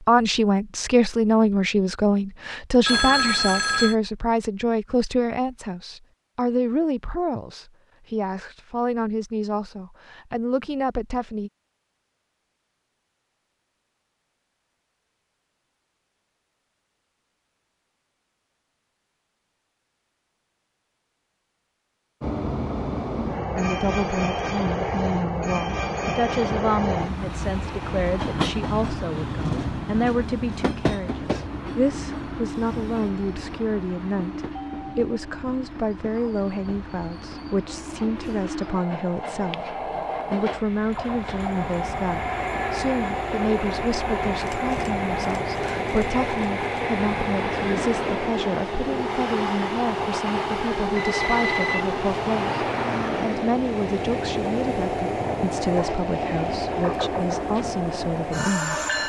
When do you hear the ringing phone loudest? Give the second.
3 s.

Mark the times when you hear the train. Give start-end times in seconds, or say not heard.
22.2-59.0.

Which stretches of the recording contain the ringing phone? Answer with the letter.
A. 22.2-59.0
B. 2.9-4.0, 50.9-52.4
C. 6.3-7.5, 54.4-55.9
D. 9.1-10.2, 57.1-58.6
B.